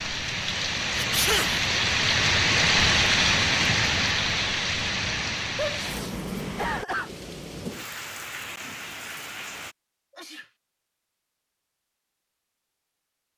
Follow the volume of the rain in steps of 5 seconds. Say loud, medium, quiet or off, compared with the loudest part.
loud, medium, off.